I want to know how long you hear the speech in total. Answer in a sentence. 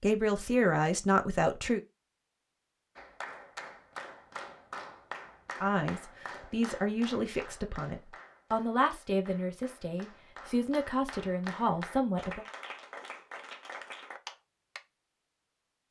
You can hear the speech for 9 seconds altogether.